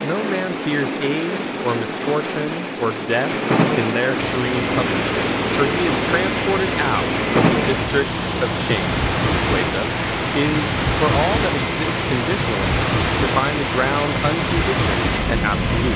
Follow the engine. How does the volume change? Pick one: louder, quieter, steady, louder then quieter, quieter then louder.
steady.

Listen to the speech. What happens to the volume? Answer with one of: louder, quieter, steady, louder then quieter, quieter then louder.
steady.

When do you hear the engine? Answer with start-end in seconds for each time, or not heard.
4.2-15.9.